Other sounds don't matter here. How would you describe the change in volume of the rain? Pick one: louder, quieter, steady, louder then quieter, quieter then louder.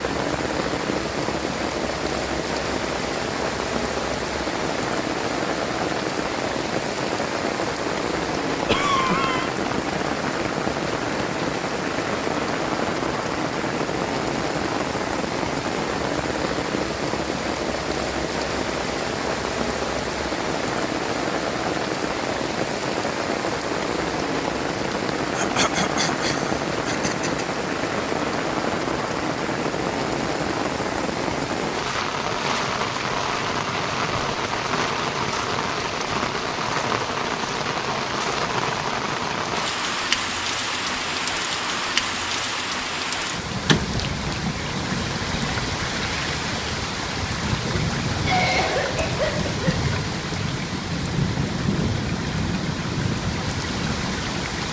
steady.